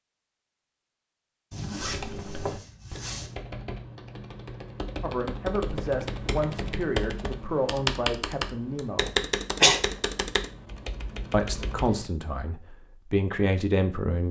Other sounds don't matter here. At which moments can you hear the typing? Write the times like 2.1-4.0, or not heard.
1.8-12.1.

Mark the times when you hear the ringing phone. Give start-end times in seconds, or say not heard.
not heard.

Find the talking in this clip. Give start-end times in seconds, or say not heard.
5.0-9.2, 11.3-14.2.